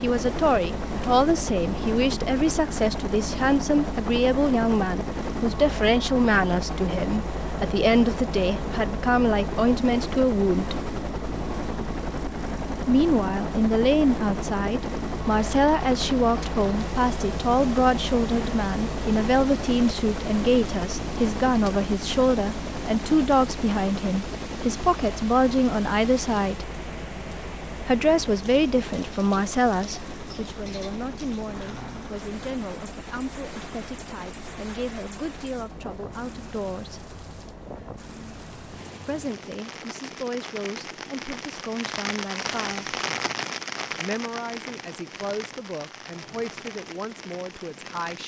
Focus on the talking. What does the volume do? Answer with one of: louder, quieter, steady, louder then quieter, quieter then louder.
quieter.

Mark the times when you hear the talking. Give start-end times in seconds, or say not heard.
0.0-10.8, 12.8-26.6, 27.8-37.1, 39.0-43.0, 44.0-48.2.